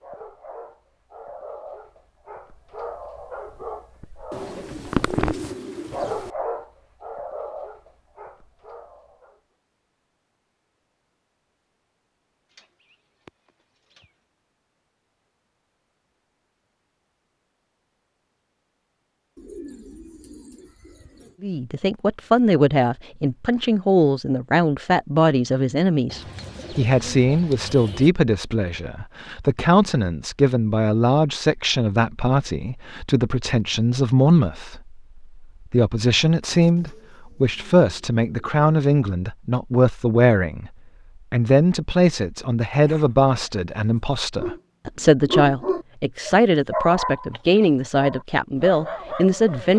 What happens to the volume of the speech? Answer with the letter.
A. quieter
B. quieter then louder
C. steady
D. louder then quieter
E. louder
C.